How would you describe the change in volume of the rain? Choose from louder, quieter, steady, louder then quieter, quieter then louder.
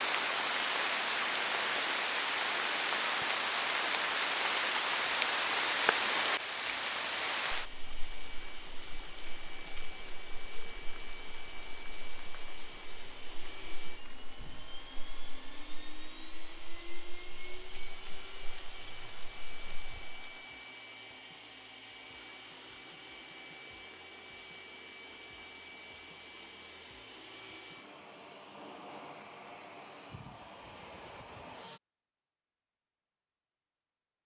quieter.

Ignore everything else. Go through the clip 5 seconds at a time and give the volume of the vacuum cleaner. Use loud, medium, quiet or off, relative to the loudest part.
off, loud, loud, loud, loud, loud, loud.